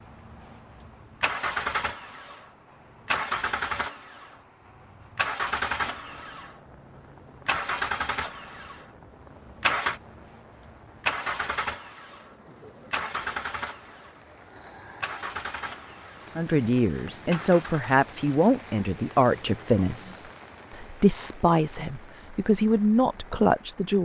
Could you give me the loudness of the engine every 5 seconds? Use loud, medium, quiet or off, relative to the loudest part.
loud, loud, loud, medium, off.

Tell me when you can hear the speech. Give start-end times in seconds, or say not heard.
16.4-23.9.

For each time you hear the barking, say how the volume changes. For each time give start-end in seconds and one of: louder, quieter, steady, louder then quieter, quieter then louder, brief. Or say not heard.
not heard.